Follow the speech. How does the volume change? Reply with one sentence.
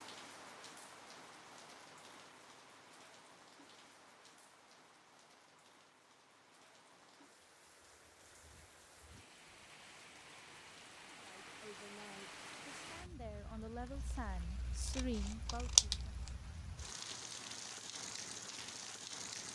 The loudness of the speech goes up.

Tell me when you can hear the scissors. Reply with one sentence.
You can hear the scissors from 13.9 to 16.4 s.